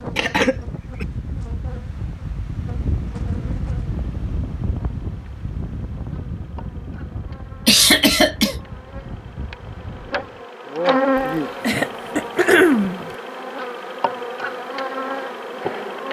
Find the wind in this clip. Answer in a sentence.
You can hear the wind from 0.0 to 10.4 s.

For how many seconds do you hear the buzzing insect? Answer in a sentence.
You can hear the buzzing insect for 16 seconds altogether.